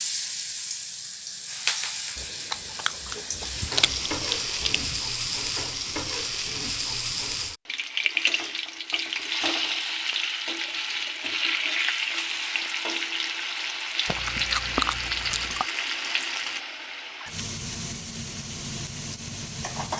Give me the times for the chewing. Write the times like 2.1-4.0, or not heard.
2.1-5.0, 14.1-15.7.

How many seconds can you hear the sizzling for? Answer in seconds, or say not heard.
20 s.